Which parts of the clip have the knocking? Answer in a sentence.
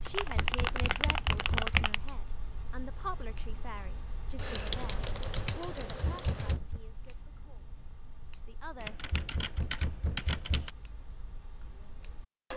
The knocking can be heard from 0.3 to 1.9 s, from 6.0 to 6.8 s and from 9.1 to 10.8 s.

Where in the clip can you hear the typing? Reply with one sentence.
You can hear the typing from 0.1 to 2.0 s, from 4.3 to 6.6 s and from 8.8 to 10.7 s.